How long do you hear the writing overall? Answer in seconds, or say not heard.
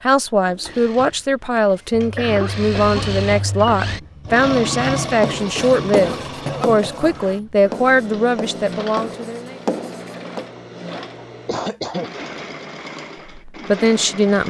5 s.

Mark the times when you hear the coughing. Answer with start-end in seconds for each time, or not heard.
1.7-3.1, 5.5-7.2, 11.3-12.1.